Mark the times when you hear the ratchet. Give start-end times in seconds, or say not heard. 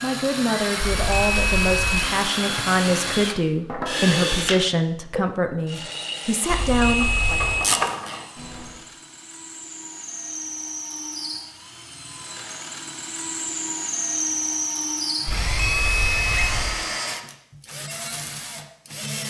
6.4-8.8.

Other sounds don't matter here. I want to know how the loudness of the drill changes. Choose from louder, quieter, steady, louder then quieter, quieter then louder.
quieter then louder.